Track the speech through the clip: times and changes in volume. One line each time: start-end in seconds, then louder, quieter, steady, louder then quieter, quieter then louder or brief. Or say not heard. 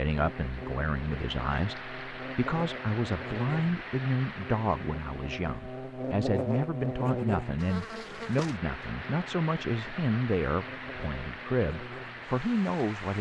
0.0-13.1 steady.